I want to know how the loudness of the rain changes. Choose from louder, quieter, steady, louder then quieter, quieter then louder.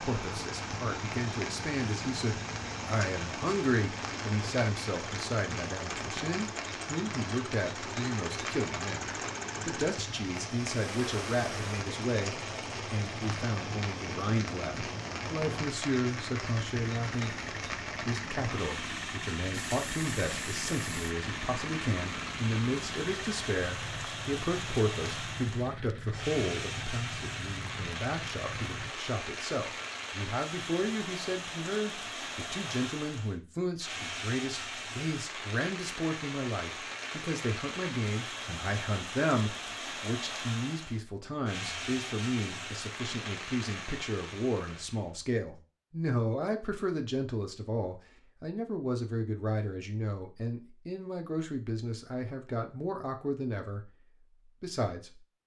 steady.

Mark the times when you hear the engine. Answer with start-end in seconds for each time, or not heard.
0.0-28.9.